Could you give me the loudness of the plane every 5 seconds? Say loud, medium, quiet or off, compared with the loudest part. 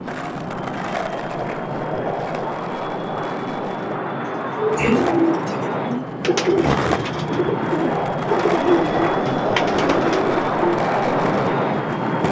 medium, loud, loud.